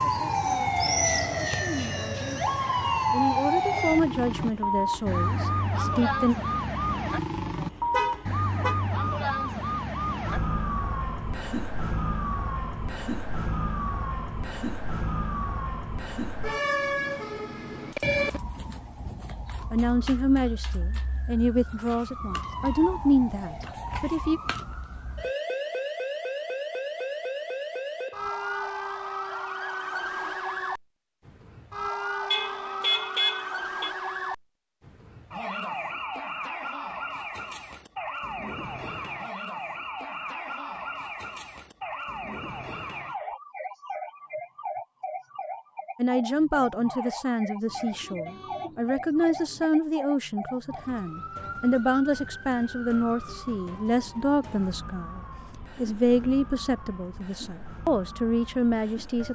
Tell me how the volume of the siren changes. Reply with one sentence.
The loudness of the siren goes down.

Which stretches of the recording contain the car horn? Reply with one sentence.
The car horn can be heard from 7.9 to 8.8 s, from 32.3 to 33.9 s and from 47.6 to 49.7 s.